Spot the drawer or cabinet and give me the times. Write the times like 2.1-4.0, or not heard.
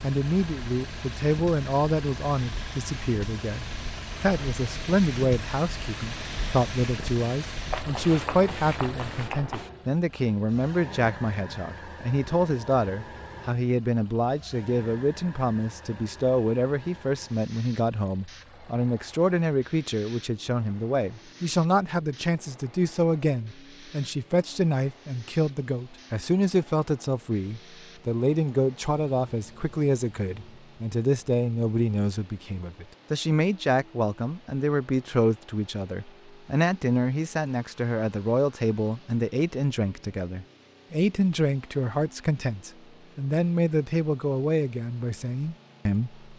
not heard.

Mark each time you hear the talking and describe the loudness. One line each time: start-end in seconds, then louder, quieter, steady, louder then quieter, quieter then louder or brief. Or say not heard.
0.0-46.2 steady.